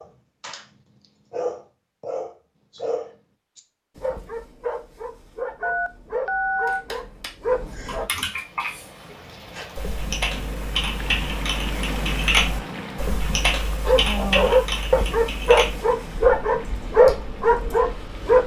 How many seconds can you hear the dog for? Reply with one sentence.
The dog can be heard for 12 seconds in total.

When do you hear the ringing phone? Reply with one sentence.
You can hear the ringing phone from 5.6 to 6.8 s.